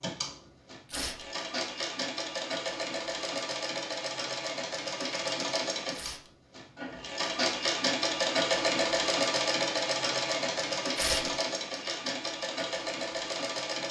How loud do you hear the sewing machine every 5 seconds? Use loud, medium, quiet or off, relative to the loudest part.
medium, loud, loud.